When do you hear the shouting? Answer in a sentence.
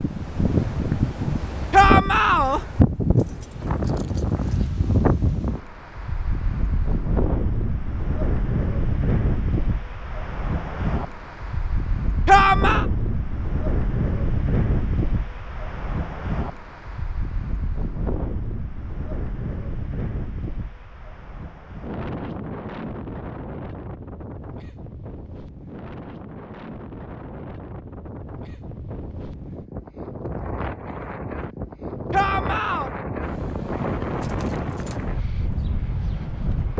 The shouting can be heard from 1.7 to 2.6 s, from 12.2 to 12.8 s and from 32.1 to 32.9 s.